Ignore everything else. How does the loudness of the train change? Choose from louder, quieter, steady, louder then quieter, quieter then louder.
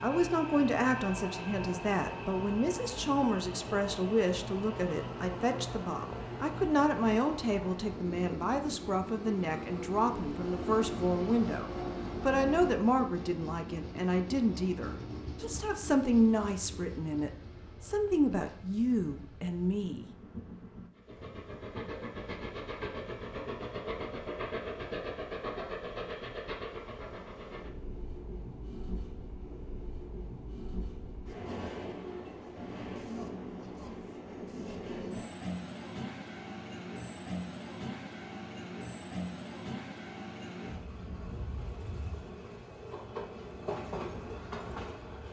steady.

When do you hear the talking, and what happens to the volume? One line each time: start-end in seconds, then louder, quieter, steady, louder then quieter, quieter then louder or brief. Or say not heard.
0.0-20.1 steady.